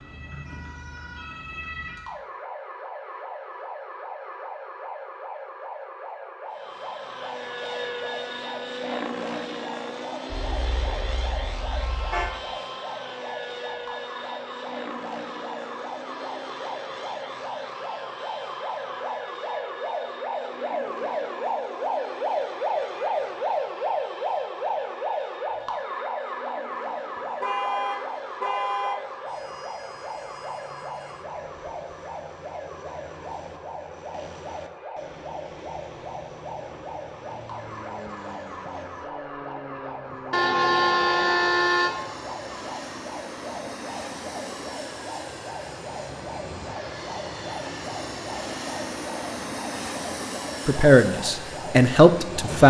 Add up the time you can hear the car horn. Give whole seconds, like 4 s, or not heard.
5 s.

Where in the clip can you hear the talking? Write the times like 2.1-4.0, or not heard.
50.6-52.6.